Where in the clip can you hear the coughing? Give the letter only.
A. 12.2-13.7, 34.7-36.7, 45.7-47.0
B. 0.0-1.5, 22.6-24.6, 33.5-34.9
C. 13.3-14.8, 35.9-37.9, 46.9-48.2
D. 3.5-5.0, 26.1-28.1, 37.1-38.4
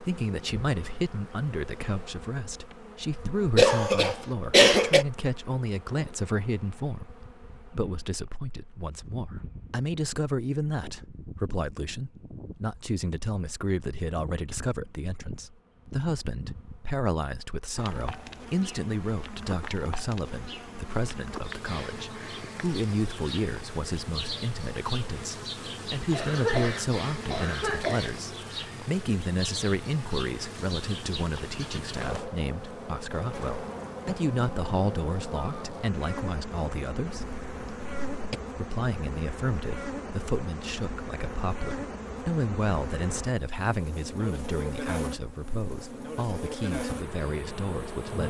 D.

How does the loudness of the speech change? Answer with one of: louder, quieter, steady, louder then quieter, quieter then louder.
steady.